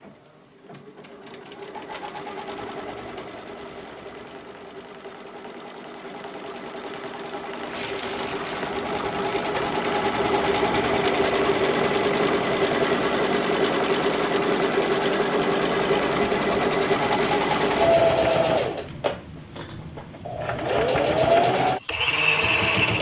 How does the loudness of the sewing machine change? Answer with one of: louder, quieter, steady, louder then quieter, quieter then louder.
louder.